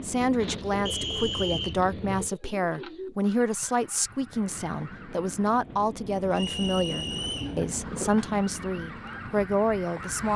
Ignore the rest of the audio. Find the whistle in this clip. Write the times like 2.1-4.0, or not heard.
0.8-1.8, 6.3-7.5.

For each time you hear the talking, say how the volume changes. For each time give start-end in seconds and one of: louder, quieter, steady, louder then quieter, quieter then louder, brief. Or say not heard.
0.0-10.3 steady.